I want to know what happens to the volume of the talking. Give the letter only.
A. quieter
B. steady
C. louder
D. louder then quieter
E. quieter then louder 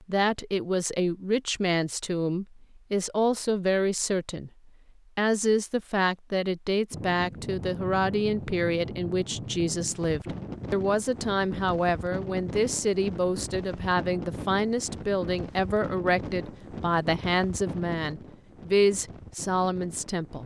B.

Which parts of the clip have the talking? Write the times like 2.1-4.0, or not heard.
0.1-20.4.